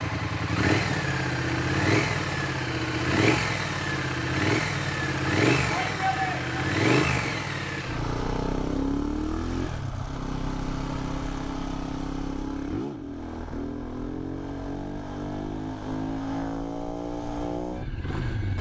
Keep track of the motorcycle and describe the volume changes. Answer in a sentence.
The loudness of the motorcycle goes down.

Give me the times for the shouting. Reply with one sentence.
The shouting can be heard from 5.7 to 6.6 s.